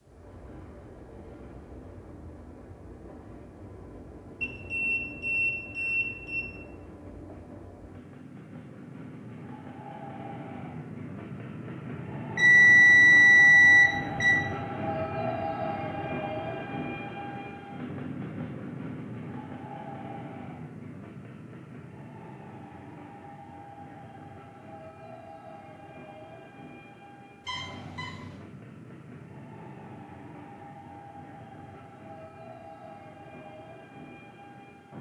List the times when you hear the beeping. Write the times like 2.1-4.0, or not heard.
4.4-6.4, 12.3-14.4, 27.4-28.4.